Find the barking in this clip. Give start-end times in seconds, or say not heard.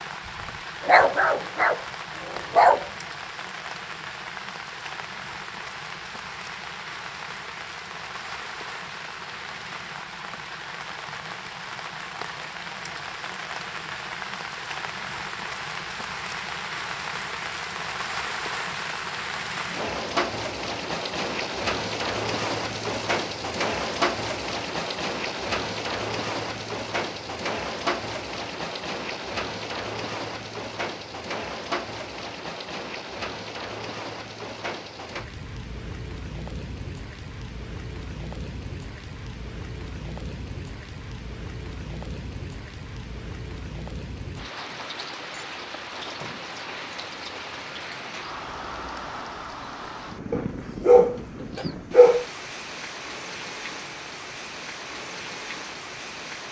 0.8-2.9, 50.3-52.2.